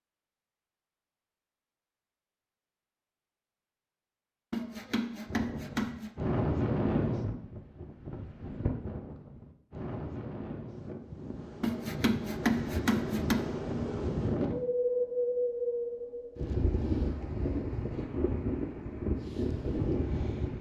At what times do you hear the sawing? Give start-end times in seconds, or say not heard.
4.5-6.1, 11.6-13.4.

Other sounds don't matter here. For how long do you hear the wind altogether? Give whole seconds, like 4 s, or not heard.
15 s.